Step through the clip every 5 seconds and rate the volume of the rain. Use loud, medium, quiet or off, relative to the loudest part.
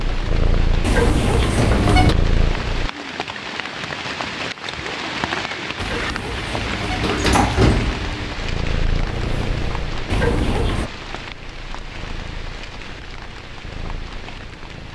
loud, loud, medium.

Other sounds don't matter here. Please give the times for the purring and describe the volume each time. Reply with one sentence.
The purring can be heard briefly from 0.0 to 2.9 s; and from 8.2 to 14.8 s, getting quieter.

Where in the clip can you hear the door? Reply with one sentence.
The door can be heard from 0.8 to 2.1 s, from 5.8 to 8.3 s and from 10.1 to 10.9 s.